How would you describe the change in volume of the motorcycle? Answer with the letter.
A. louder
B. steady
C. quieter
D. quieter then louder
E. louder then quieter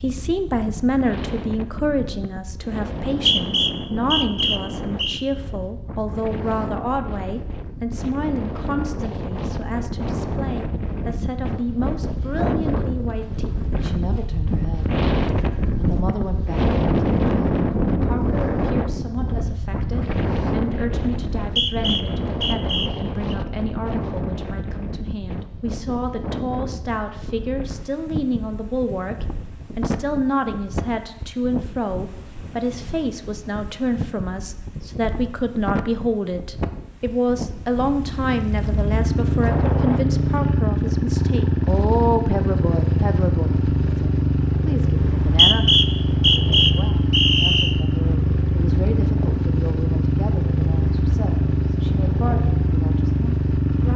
B.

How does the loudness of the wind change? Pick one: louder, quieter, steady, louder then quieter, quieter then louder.
louder then quieter.